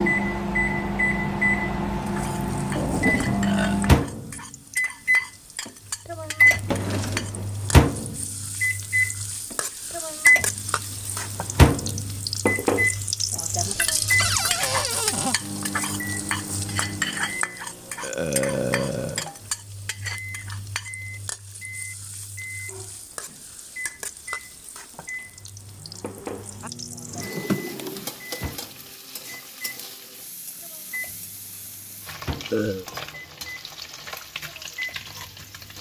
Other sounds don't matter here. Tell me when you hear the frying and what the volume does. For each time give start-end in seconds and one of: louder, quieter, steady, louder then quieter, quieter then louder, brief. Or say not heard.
2.0-35.7 louder then quieter.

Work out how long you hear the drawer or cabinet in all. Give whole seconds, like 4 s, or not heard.
4 s.